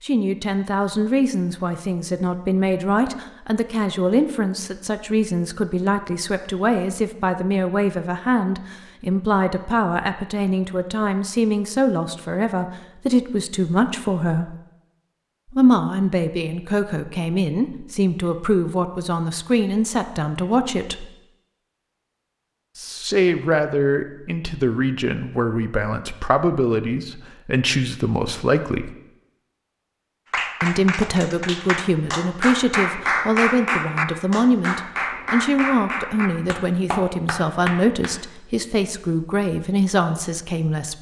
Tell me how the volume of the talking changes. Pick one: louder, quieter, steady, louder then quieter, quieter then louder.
steady.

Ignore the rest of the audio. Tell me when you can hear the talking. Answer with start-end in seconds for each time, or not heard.
0.0-14.6, 15.5-21.1, 22.8-28.9, 30.6-40.9.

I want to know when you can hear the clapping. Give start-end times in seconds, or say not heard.
30.3-38.1.